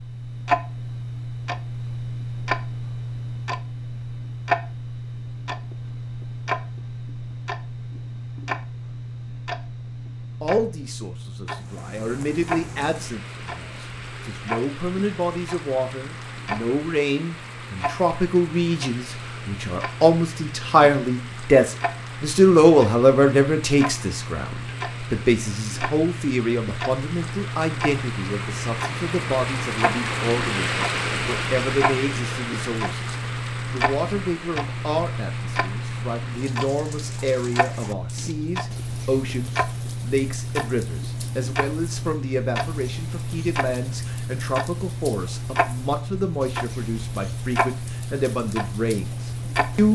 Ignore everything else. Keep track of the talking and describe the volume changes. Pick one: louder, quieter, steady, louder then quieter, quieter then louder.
louder then quieter.